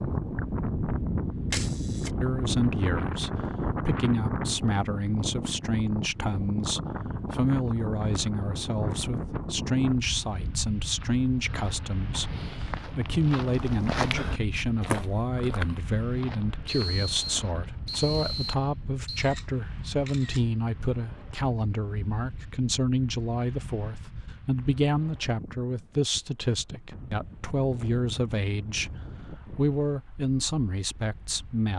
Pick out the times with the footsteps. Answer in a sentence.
The footsteps can be heard from 10.8 to 18.8 s.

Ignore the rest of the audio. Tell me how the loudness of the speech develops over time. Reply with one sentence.
The volume of the speech stays about the same.